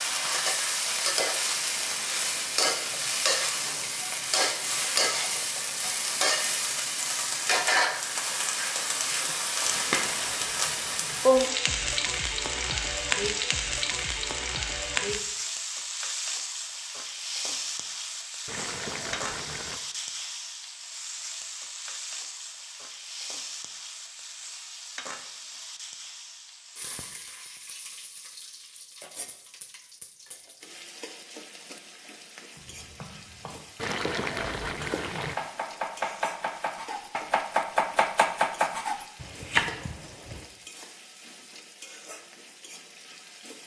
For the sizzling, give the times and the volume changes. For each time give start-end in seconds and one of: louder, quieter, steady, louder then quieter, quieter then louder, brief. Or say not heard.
0.0-43.6 quieter.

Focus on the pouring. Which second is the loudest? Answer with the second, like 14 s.
34 s.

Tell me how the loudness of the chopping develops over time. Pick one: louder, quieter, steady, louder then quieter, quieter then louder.
louder.